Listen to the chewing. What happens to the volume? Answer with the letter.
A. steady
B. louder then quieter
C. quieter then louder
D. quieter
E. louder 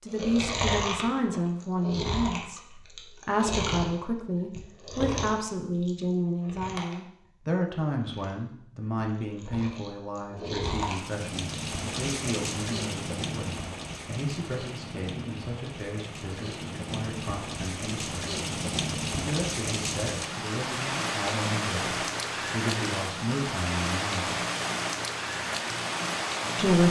C.